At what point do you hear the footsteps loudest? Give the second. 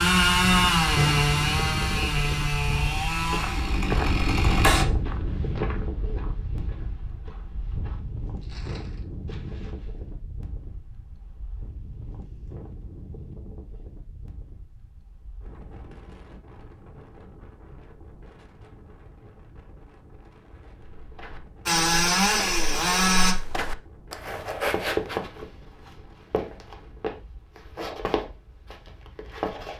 25 s.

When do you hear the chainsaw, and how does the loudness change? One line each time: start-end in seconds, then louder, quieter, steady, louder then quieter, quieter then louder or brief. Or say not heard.
0.0-4.8 quieter
21.6-23.4 brief.